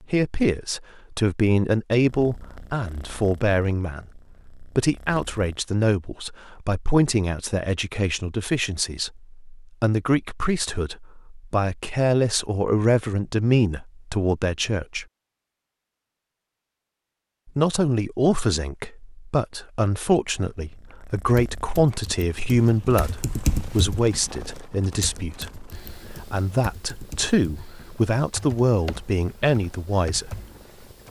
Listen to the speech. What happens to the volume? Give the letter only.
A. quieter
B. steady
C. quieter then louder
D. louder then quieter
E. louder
B.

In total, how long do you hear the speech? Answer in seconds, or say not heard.
28 s.